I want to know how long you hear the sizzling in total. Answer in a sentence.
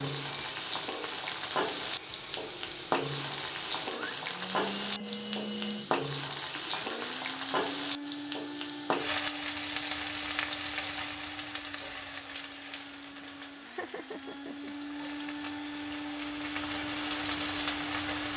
The sizzling can be heard for 18 seconds in total.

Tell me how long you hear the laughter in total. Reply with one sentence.
The laughter can be heard for 2 seconds in total.